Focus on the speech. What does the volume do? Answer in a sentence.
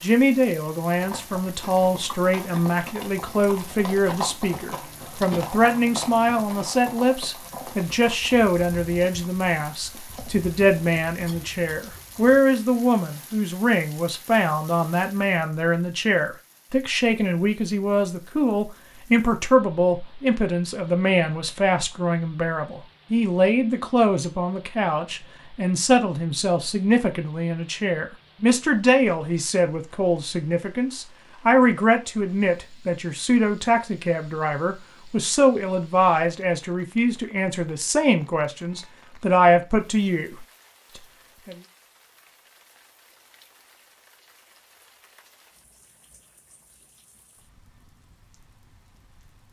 The volume of the speech stays about the same.